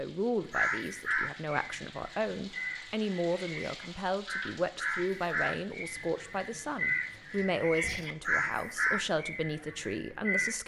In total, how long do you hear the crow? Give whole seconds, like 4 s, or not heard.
10 s.